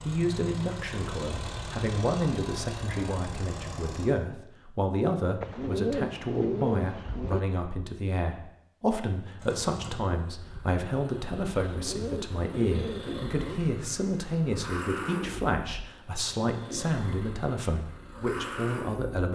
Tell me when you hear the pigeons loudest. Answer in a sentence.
The loudest moment of the pigeons is at 6 seconds.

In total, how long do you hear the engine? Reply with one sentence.
You can hear the engine for 14 seconds altogether.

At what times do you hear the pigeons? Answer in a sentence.
The pigeons can be heard from 5.4 to 7.4 s and from 11.6 to 13.6 s.